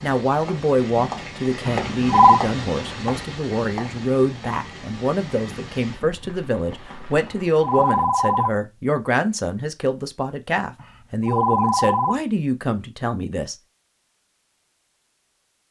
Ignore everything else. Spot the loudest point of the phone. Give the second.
2 s.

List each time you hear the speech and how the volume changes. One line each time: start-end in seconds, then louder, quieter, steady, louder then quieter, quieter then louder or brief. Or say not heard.
0.0-13.6 steady.